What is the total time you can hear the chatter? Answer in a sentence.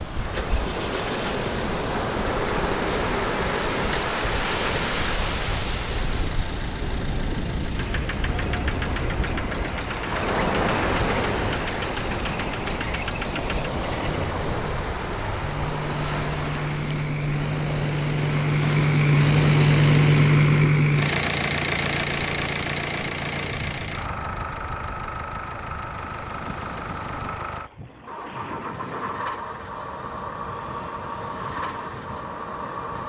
The chatter can't be heard in this clip.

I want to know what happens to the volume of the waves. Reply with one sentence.
The loudness of the waves goes down.